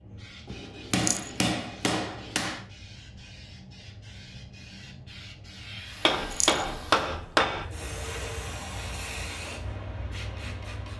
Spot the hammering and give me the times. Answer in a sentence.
The hammering can be heard from 0.5 to 2.6 s and from 6.0 to 7.7 s.